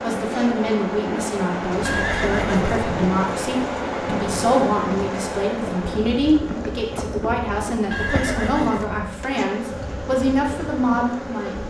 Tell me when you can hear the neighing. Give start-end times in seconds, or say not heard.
1.9-2.8, 7.9-9.1.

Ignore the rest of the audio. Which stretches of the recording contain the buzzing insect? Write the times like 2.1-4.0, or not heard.
0.0-11.6.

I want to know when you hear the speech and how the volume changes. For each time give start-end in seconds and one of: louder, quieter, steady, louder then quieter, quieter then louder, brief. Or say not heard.
0.0-11.6 steady.